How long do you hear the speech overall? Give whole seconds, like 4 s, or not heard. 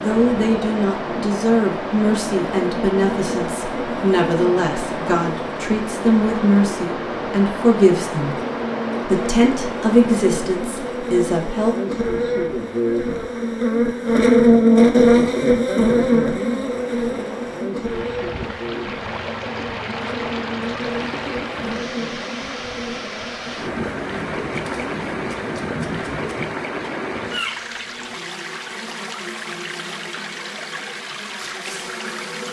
11 s.